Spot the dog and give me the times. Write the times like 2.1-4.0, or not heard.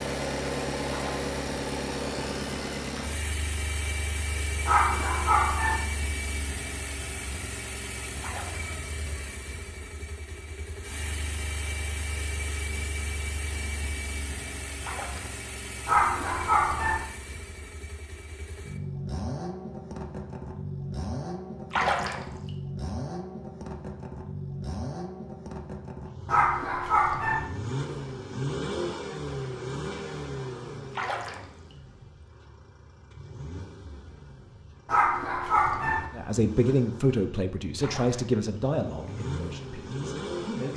4.7-5.8, 15.8-17.1, 26.2-27.4, 34.9-36.0.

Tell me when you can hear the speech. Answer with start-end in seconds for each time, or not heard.
36.1-40.7.